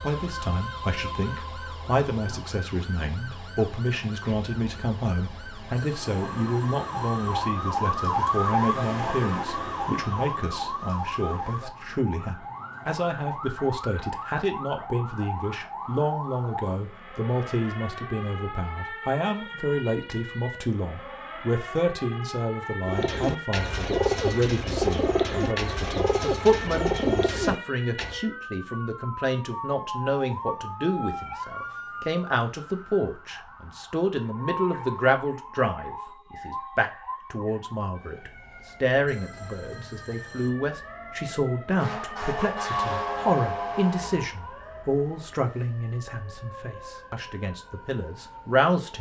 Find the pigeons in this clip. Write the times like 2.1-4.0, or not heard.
22.9-28.2.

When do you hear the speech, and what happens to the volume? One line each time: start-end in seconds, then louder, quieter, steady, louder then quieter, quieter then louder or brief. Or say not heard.
0.0-48.9 steady.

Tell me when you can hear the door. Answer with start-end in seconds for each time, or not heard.
not heard.